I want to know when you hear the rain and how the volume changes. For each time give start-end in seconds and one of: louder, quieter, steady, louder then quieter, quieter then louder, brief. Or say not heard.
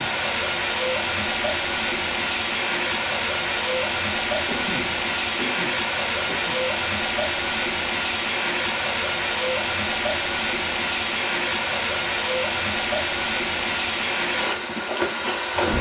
0.0-15.7 steady.